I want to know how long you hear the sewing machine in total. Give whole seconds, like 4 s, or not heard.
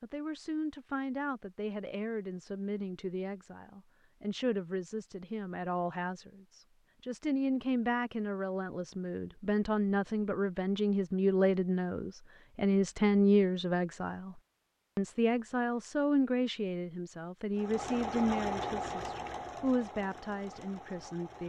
4 s.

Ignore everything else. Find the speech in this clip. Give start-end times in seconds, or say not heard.
0.0-21.4.